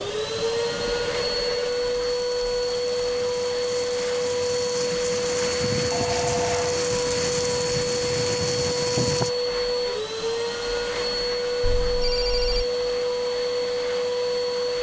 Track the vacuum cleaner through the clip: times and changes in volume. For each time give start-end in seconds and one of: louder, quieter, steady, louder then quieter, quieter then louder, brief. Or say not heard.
0.0-14.7 steady.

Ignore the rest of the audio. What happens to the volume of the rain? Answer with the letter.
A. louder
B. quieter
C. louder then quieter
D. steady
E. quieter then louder
A.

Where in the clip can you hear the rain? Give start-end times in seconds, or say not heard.
0.0-9.3.